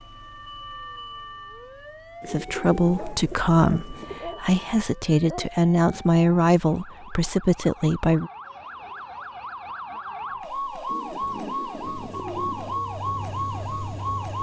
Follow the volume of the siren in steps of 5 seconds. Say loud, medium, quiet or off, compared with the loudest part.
medium, medium, loud.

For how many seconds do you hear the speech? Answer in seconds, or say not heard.
6 s.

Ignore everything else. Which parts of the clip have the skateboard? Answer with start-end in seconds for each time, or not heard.
not heard.